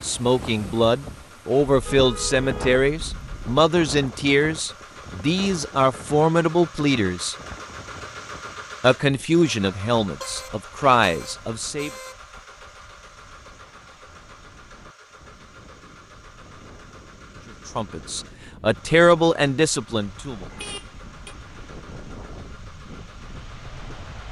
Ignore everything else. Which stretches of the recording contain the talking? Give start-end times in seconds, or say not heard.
0.0-7.3, 8.8-11.9, 17.6-20.4.